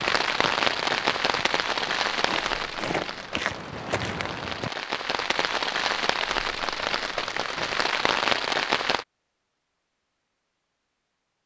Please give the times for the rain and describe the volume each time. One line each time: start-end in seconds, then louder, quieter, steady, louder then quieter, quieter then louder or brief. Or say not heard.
0.0-9.1 quieter then louder.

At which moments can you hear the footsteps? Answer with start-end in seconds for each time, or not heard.
0.0-4.7.